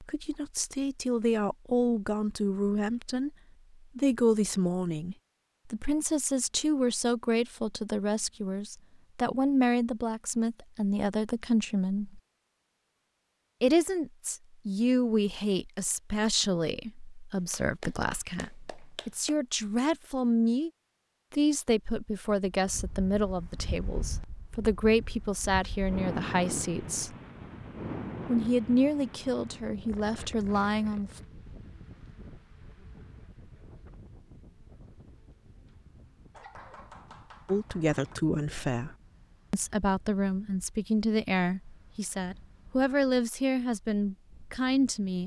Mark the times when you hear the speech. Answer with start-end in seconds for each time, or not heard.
0.0-3.3, 4.0-12.2, 13.6-20.7, 21.3-27.1, 28.2-31.2, 37.5-45.2.